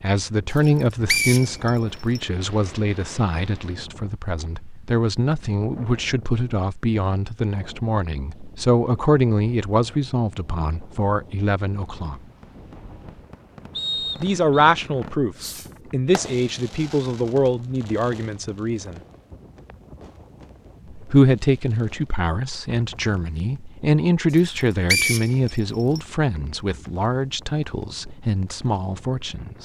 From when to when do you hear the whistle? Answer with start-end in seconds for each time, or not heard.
1.1-2.2, 13.7-14.7, 24.9-26.0.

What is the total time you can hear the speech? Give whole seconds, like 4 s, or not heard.
26 s.